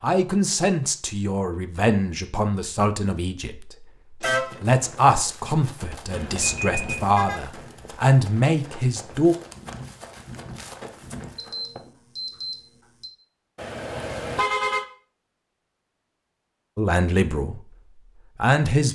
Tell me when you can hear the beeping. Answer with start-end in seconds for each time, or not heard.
6.1-7.2, 11.3-13.1.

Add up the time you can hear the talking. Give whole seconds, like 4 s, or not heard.
11 s.